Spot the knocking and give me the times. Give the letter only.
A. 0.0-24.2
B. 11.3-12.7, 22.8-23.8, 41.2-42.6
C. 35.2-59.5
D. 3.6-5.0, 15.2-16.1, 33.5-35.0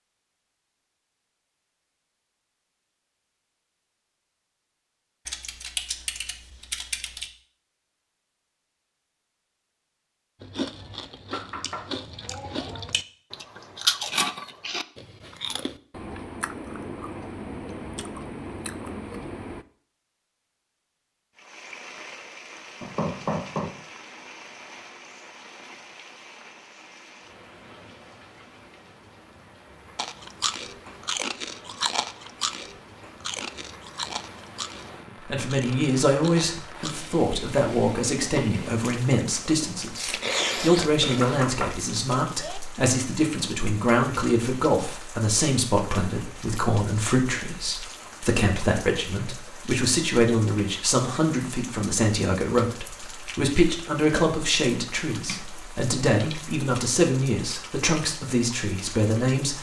B.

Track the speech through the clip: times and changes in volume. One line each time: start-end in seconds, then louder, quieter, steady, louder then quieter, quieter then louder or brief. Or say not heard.
35.2-59.5 steady.